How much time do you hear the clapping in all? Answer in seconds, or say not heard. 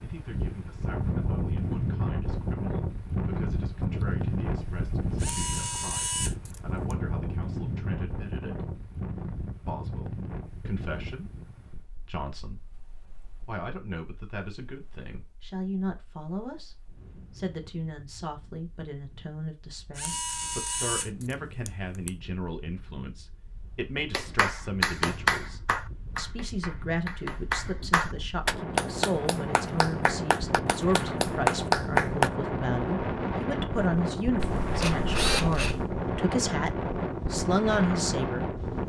8 s.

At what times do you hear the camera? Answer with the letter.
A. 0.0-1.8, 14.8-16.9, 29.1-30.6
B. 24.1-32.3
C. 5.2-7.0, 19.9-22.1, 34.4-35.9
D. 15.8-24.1
C.